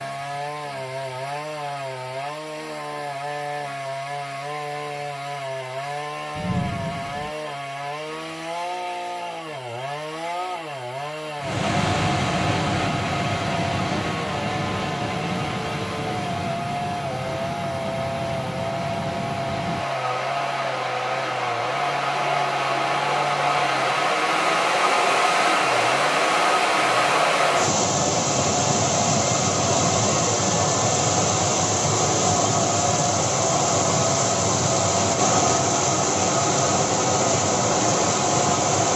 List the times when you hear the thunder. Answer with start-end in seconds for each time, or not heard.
6.3-7.3.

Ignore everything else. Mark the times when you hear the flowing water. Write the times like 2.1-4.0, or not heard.
11.4-38.9.